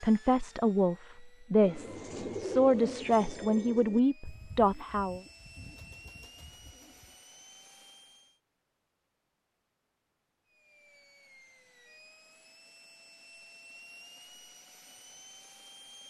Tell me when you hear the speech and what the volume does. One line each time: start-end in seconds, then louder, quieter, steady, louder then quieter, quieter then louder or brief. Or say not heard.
0.0-5.2 steady.